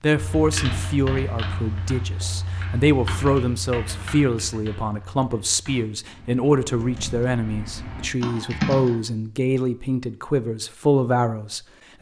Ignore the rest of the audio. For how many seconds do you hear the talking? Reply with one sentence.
You can hear the talking for 12 seconds altogether.